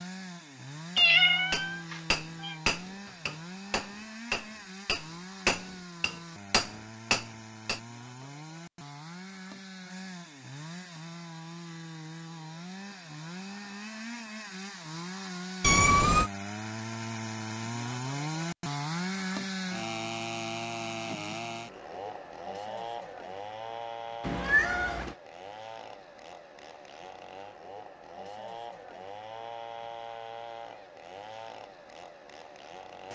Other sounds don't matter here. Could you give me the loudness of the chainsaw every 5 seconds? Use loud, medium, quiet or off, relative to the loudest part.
medium, medium, medium, loud, loud, medium, medium.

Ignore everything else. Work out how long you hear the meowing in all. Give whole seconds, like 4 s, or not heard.
3 s.